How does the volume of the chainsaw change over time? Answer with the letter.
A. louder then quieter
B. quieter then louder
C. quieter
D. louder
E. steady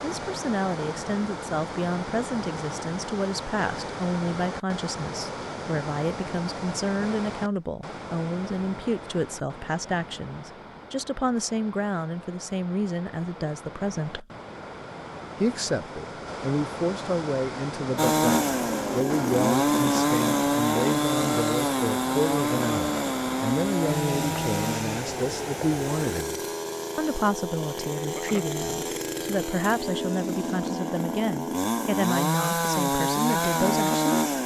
B.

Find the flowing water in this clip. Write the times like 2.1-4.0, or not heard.
0.0-26.2.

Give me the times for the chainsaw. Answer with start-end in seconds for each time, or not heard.
17.9-34.4.